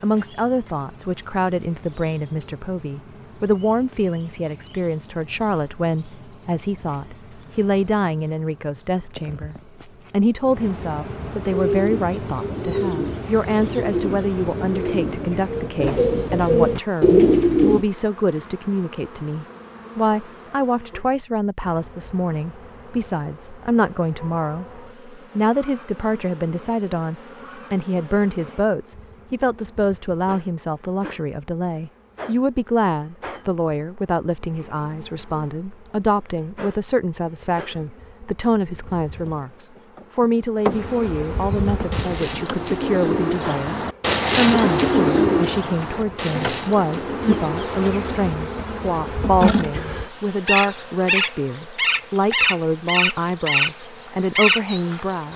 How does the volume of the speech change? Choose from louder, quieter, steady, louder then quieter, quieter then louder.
steady.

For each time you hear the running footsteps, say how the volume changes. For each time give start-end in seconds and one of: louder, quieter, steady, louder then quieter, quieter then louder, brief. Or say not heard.
not heard.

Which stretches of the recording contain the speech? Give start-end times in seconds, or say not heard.
0.0-55.3.